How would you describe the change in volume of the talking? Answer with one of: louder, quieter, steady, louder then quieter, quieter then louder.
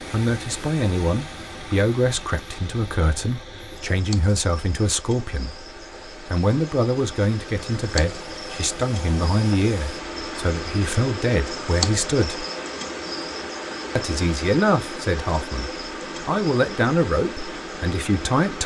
steady.